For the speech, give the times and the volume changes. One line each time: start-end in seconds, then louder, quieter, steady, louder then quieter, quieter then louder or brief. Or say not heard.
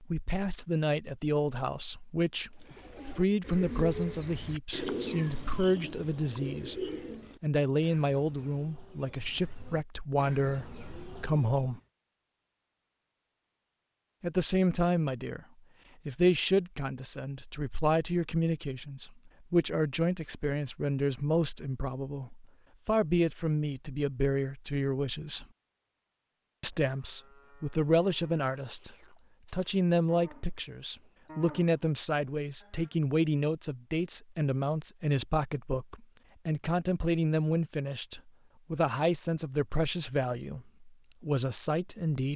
0.0-11.8 steady
14.2-15.4 brief
16.1-25.4 steady
26.6-42.3 steady.